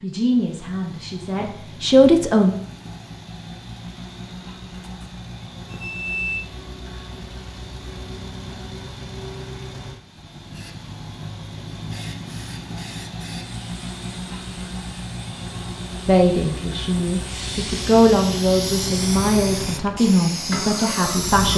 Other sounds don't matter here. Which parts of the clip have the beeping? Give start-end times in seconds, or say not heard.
4.8-6.5.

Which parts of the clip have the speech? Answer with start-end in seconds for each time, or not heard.
0.0-2.5, 16.1-21.5.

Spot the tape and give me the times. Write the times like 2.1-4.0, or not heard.
not heard.